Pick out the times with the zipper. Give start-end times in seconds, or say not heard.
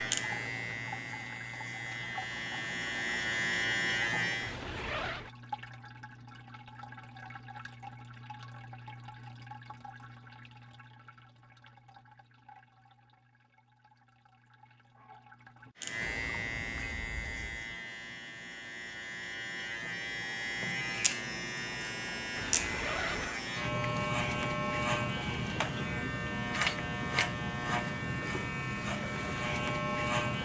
4.4-5.3, 22.4-23.4.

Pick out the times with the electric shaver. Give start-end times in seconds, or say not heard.
0.0-4.5, 15.8-30.3.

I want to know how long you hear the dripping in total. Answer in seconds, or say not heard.
18 s.